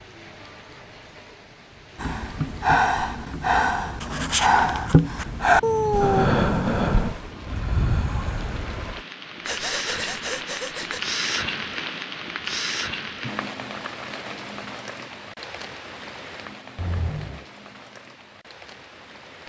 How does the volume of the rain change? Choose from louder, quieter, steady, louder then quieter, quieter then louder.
louder then quieter.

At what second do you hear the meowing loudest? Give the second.
6 s.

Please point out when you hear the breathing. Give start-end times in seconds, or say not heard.
2.0-11.0.